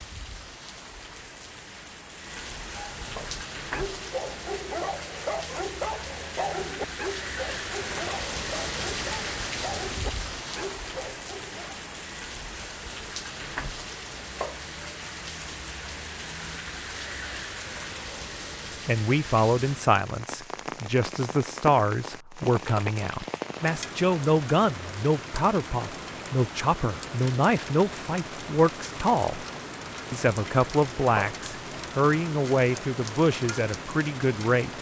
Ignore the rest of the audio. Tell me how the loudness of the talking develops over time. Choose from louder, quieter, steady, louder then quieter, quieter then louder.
steady.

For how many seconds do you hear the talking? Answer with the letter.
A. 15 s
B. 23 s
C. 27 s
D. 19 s
A.